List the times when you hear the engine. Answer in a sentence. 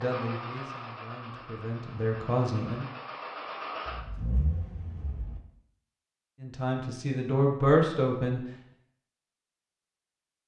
You can hear the engine from 0.0 to 5.4 s.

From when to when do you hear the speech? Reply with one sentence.
You can hear the speech from 0.0 to 2.9 s and from 6.4 to 8.4 s.